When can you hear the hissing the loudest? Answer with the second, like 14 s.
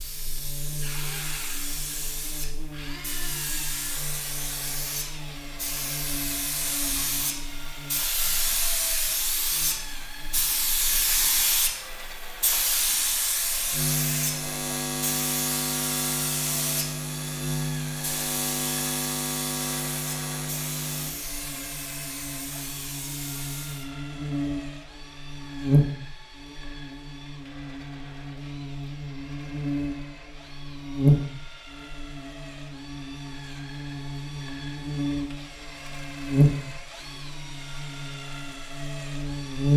11 s.